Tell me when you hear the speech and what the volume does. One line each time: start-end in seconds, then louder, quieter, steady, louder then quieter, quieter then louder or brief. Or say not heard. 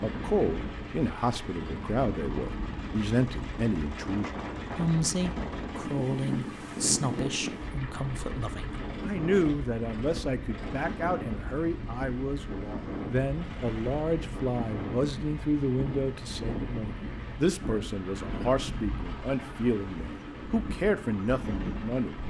0.0-22.1 steady.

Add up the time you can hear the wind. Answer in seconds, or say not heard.
22 s.